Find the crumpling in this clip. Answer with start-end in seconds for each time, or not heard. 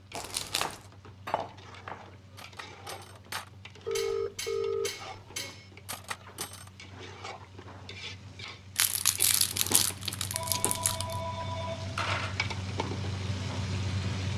0.1-0.9, 8.8-11.2.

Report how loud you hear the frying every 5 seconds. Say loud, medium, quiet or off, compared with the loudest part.
quiet, medium, loud.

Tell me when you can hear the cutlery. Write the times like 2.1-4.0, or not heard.
0.1-6.7.